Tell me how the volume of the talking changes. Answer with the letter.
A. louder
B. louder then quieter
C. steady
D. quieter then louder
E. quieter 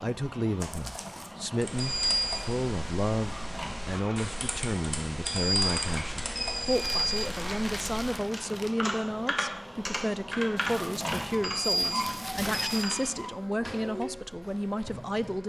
C.